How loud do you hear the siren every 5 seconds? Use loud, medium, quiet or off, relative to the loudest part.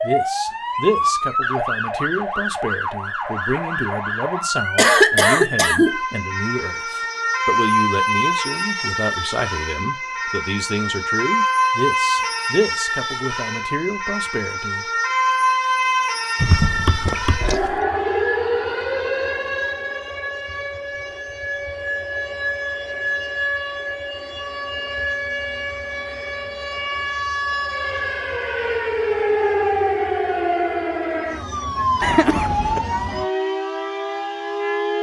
loud, loud, loud, loud, medium, loud, loud.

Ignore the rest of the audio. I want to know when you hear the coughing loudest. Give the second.
5 s.